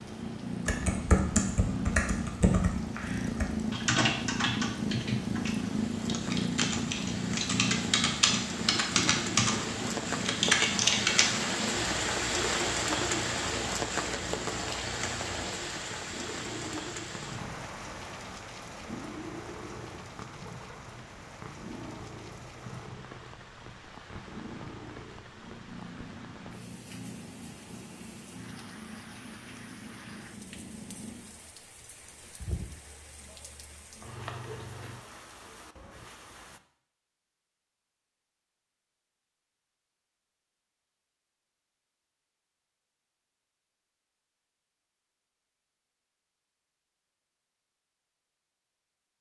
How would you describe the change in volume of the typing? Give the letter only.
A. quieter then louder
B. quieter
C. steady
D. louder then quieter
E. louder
A.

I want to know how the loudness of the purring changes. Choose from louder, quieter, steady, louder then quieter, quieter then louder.
quieter.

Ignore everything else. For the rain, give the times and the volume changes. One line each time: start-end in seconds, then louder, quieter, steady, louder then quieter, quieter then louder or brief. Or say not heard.
0.0-36.6 louder then quieter.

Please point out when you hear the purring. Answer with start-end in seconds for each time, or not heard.
0.0-35.0.